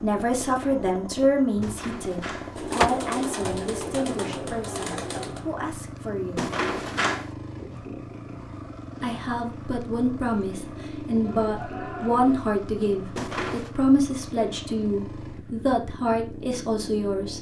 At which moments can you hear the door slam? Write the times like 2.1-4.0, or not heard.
1.6-2.9, 6.3-7.3, 13.2-13.8.